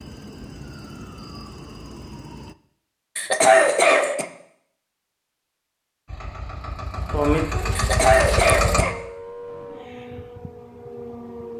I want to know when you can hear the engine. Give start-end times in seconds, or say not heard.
6.0-8.8.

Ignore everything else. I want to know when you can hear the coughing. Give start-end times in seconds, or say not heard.
3.1-4.2, 7.8-8.9.